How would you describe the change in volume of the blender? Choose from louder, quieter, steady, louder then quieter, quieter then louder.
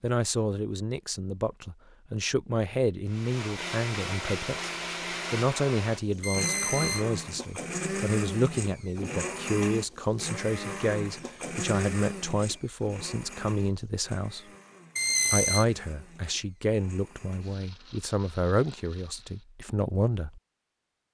quieter.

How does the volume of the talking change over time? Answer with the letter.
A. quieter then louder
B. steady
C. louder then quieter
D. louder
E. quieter
B.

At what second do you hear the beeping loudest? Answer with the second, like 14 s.
15 s.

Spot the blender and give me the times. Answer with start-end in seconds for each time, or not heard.
3.0-19.4.